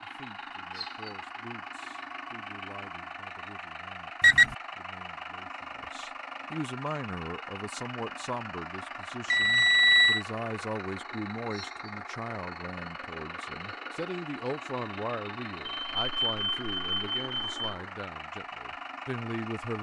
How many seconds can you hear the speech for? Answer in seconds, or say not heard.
20 s.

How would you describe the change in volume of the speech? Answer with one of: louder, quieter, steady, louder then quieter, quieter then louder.
louder.